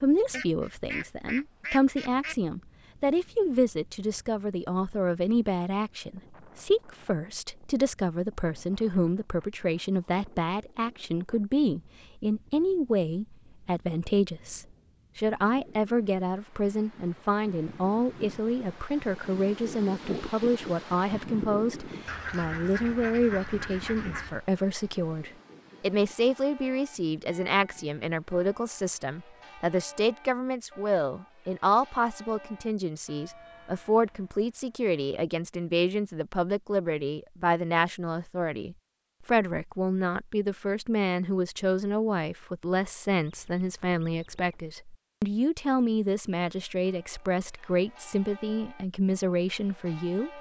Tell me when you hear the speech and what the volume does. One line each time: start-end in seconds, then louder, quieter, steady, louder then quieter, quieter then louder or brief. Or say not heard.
0.0-50.3 steady.